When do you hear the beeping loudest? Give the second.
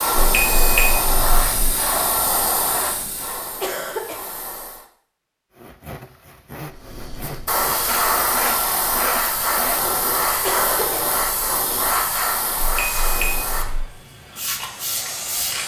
1 s.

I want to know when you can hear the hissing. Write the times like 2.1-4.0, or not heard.
0.0-4.8, 6.7-15.6.